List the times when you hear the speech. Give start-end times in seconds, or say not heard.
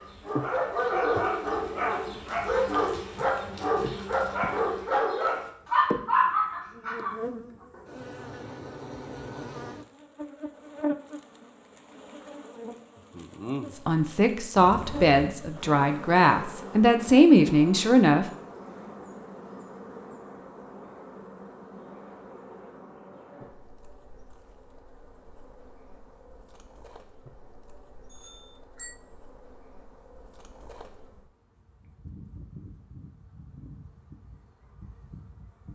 13.8-18.2.